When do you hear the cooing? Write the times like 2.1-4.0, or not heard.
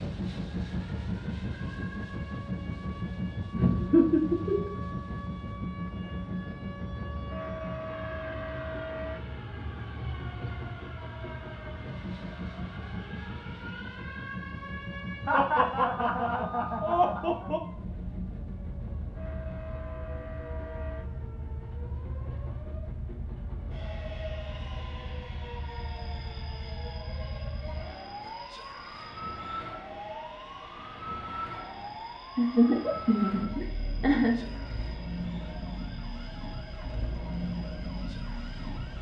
not heard.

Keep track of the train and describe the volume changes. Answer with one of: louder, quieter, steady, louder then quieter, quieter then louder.
quieter.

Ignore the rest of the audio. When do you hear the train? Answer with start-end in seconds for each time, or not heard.
0.0-38.9.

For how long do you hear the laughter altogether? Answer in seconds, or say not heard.
6 s.